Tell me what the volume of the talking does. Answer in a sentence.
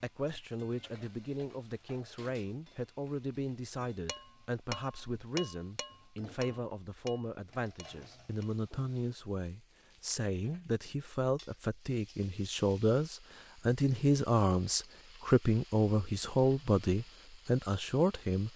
The volume of the talking goes up.